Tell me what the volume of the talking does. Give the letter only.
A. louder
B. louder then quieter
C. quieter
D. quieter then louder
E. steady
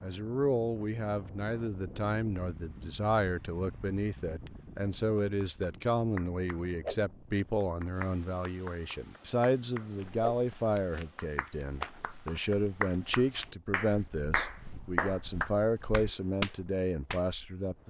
E.